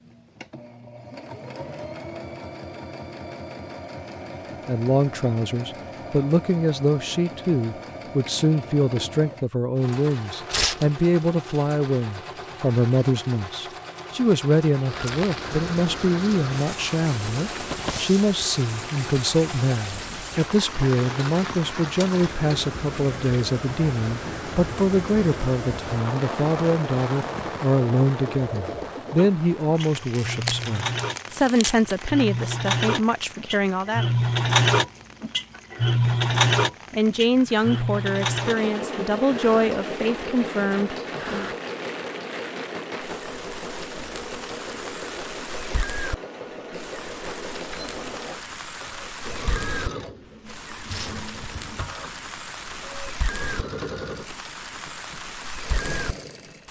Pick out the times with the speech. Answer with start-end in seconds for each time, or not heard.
4.7-34.1, 36.9-41.5.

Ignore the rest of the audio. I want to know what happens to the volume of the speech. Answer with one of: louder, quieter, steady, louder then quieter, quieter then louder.
steady.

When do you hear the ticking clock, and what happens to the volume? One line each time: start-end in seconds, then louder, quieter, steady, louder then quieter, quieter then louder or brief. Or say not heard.
not heard.